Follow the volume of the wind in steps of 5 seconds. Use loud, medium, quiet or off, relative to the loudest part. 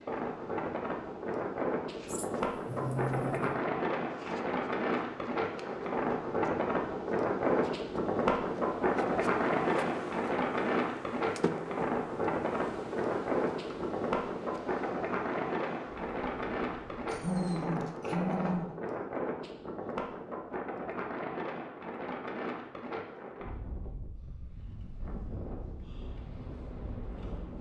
loud, loud, loud, medium, medium, quiet.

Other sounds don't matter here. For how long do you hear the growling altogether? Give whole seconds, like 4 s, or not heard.
3 s.